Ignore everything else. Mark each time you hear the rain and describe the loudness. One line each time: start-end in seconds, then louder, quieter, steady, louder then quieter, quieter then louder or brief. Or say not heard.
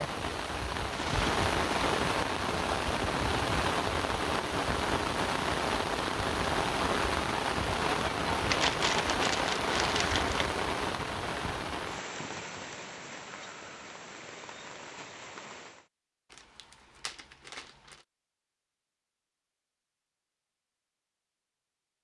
0.0-15.9 quieter.